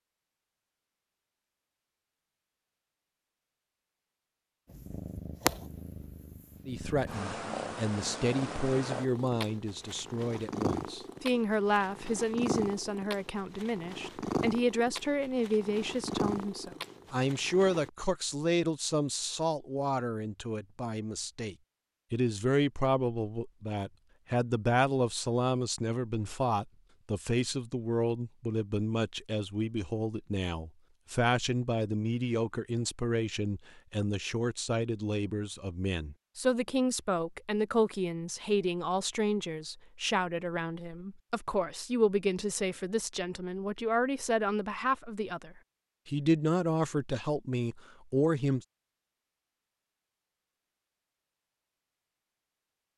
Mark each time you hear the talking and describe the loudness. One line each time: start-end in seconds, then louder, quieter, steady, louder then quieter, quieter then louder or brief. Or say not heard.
6.7-48.6 steady.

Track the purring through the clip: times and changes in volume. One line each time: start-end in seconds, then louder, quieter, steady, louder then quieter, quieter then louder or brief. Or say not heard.
4.7-17.9 steady.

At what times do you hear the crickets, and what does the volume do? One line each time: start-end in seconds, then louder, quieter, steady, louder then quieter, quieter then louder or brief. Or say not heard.
not heard.